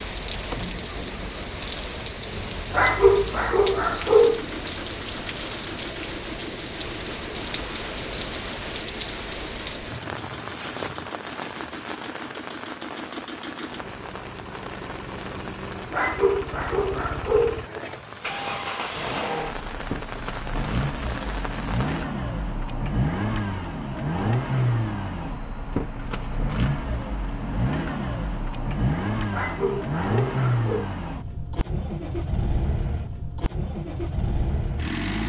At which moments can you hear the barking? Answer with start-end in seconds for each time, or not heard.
2.7-4.5, 15.9-17.6, 29.3-30.9.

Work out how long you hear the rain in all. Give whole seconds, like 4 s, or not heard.
22 s.